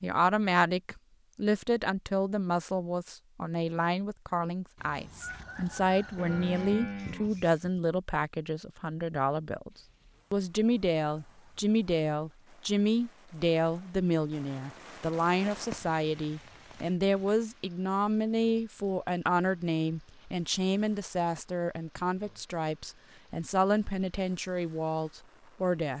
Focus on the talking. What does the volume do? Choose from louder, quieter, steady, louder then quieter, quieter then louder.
steady.